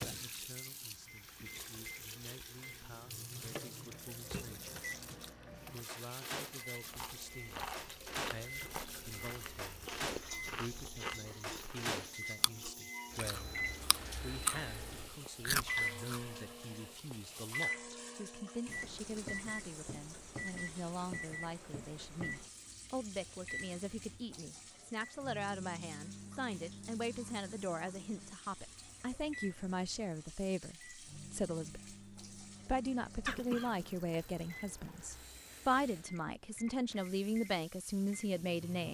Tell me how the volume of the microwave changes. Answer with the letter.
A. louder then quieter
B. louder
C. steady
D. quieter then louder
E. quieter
A.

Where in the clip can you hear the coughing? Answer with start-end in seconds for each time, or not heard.
33.2-33.9.